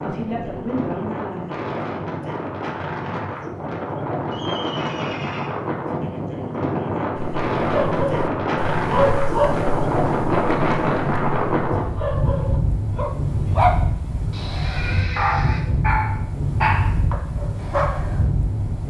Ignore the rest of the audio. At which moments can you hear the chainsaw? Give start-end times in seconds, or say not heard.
not heard.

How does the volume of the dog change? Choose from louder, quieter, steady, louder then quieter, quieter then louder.
quieter then louder.